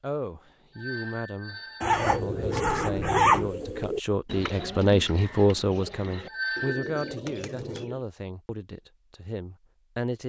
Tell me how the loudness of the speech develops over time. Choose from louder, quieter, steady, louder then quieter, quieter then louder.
louder then quieter.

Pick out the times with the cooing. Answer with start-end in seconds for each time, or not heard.
1.9-8.0.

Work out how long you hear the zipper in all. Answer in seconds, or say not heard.
2 s.